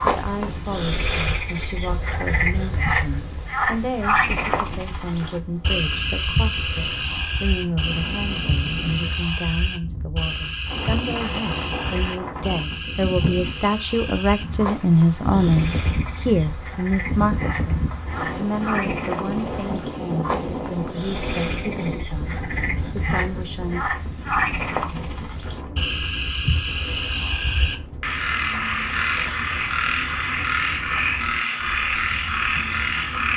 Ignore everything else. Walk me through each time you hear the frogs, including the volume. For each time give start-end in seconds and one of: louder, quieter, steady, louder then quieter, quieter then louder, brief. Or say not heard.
0.0-33.3 quieter then louder.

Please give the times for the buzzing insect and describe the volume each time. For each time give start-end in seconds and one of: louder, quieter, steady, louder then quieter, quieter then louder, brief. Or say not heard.
not heard.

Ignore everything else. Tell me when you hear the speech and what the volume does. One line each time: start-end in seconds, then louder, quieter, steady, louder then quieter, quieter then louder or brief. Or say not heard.
0.0-23.8 louder then quieter.